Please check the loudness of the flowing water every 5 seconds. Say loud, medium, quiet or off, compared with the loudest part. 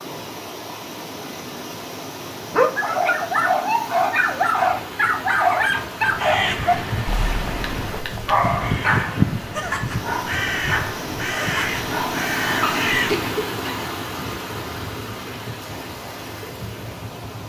medium, medium, loud, medium.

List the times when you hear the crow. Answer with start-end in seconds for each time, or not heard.
6.0-13.2.